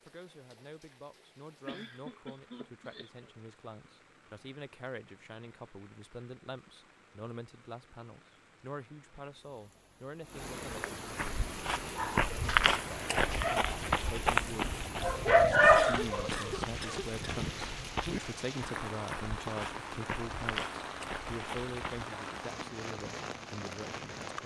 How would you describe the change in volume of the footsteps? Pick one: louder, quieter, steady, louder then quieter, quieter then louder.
quieter.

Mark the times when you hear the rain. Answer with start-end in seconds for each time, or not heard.
0.0-24.4.